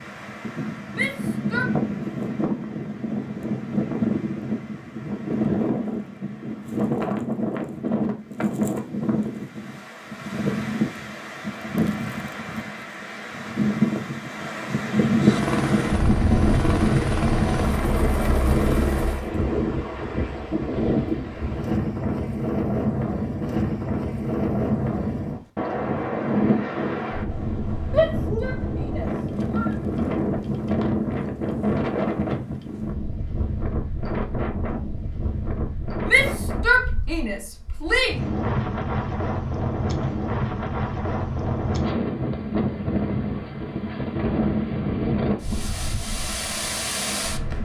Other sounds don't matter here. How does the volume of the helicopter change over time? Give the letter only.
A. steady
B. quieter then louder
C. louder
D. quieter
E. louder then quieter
A.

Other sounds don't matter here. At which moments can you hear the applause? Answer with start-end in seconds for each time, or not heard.
not heard.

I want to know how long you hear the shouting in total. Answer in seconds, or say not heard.
5 s.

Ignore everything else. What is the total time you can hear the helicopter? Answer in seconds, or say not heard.
4 s.